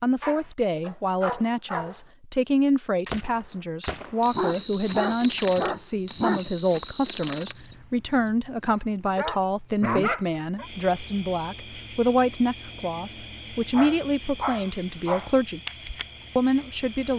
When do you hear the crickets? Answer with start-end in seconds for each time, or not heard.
4.2-17.1.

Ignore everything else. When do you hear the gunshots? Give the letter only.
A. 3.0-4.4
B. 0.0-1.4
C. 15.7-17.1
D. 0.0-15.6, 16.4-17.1
A.